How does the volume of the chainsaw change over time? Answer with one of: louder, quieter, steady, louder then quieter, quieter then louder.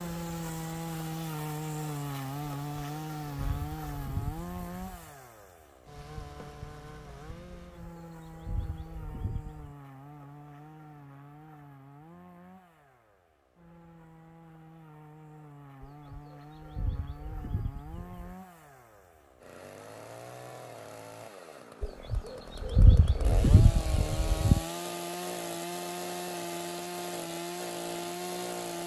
quieter then louder.